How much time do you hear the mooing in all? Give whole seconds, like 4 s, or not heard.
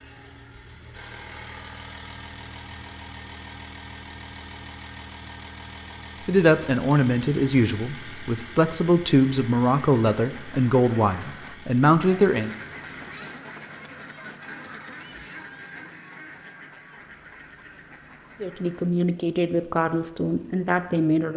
not heard.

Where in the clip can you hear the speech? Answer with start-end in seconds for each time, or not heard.
6.2-12.5, 18.4-21.3.